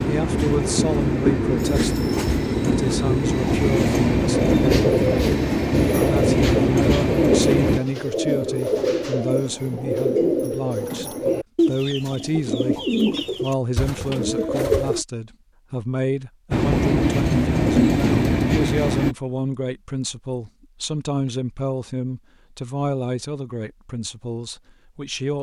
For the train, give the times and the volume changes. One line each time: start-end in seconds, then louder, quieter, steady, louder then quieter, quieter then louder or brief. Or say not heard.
0.0-7.8 steady
16.5-19.1 brief.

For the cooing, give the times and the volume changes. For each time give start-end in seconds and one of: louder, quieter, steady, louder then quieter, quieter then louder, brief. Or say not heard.
4.3-15.1 steady.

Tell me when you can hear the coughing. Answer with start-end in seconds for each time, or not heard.
not heard.